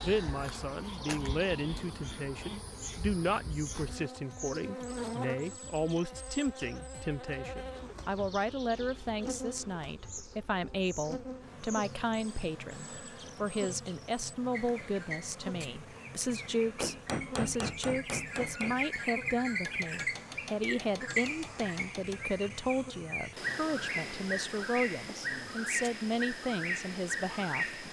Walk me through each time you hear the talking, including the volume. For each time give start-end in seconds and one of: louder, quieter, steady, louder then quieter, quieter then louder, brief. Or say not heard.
0.0-27.8 steady.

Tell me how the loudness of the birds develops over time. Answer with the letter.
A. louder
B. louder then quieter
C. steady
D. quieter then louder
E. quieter
A.